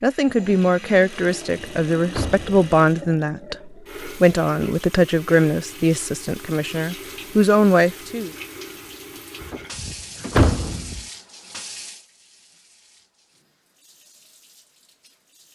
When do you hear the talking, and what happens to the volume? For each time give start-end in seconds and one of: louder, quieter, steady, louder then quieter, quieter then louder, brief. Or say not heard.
0.0-8.3 steady.